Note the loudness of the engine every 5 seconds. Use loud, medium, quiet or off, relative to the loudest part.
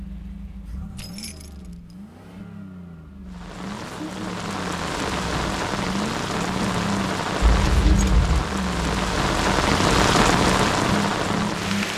medium, loud, loud.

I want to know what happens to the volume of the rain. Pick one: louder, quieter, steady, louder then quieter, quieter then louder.
louder.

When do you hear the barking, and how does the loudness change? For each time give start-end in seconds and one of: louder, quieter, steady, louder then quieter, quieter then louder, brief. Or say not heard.
not heard.